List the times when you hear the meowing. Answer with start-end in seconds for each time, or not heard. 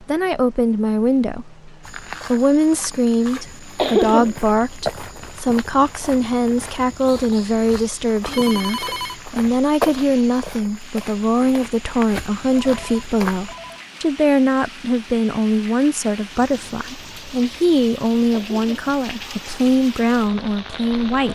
not heard.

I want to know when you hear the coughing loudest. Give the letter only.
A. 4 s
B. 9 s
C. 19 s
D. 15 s
A.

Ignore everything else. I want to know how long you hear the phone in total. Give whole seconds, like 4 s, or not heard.
2 s.